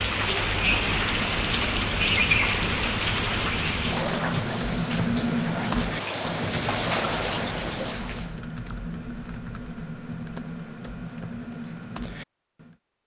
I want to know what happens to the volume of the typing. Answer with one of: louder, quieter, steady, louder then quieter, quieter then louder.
louder then quieter.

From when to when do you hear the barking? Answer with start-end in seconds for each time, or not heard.
not heard.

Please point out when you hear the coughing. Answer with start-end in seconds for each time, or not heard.
not heard.